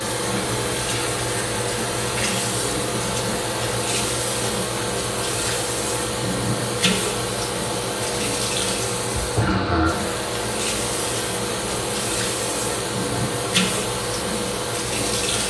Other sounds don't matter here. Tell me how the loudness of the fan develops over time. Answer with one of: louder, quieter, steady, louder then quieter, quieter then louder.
steady.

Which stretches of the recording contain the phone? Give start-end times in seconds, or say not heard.
not heard.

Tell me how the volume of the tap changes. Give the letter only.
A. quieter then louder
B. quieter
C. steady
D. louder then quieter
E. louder
C.